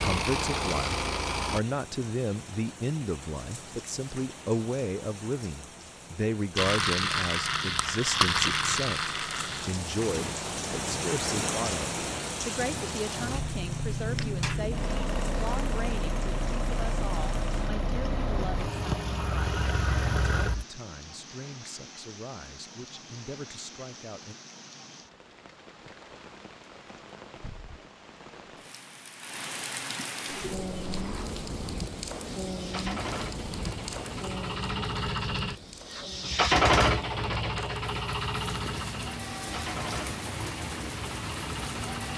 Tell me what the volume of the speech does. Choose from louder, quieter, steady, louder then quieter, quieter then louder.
quieter.